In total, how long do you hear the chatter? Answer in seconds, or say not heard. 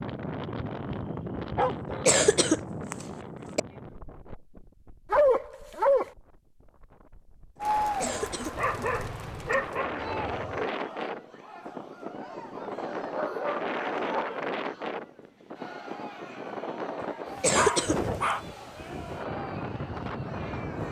13 s.